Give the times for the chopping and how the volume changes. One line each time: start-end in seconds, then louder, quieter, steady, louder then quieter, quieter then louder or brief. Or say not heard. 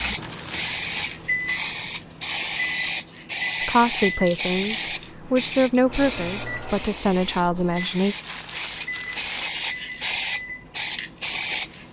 not heard.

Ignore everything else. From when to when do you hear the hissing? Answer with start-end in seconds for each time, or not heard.
0.0-11.8.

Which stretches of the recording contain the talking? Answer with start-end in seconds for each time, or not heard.
3.6-8.2.